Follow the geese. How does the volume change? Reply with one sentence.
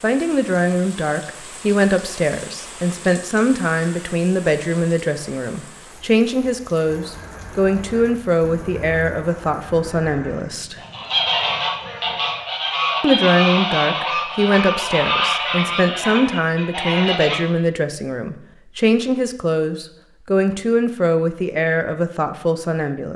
The volume of the geese goes up.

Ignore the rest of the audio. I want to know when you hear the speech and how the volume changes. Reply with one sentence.
The speech can be heard from 0.0 to 10.8 s, at a steady volume; and from 13.0 to 23.1 s, at a steady volume.